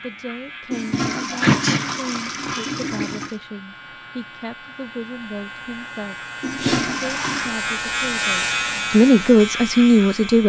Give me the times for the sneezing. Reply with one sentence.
You can hear the sneezing from 1.4 to 1.9 s and from 6.5 to 7.0 s.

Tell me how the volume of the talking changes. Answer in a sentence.
The volume of the talking goes up.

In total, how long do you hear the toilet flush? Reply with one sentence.
You can hear the toilet flush for 4 seconds altogether.